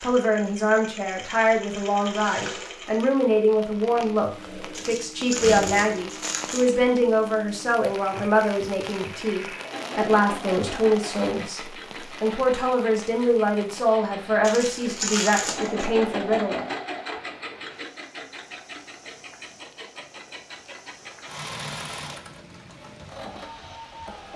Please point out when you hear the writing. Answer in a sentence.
You can't hear the writing here.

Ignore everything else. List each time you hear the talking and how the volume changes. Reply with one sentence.
You can hear the talking from 0.0 to 16.6 s, at a steady volume.